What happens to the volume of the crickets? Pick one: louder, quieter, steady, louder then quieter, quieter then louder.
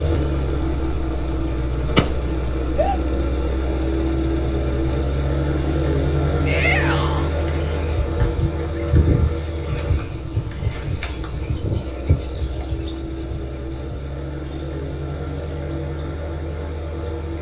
quieter.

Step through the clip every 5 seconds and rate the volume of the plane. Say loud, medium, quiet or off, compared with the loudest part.
loud, loud, medium, medium.